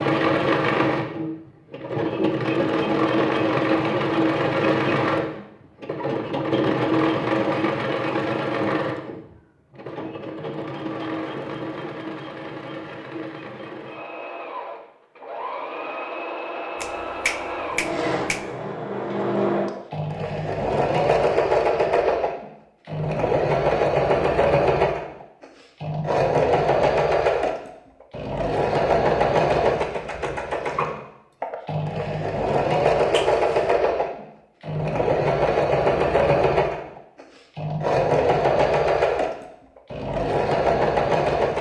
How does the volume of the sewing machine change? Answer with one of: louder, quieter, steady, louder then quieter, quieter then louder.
quieter then louder.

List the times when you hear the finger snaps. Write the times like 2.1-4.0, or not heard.
16.8-18.6, 33.1-33.7.